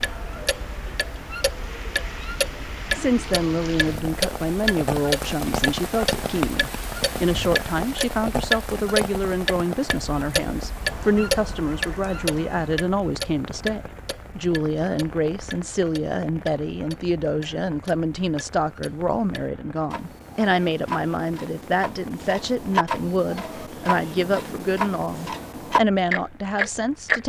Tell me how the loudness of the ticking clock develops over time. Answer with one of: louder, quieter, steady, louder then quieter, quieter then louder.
quieter then louder.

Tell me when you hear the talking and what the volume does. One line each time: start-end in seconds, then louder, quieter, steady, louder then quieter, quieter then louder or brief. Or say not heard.
2.8-27.2 steady.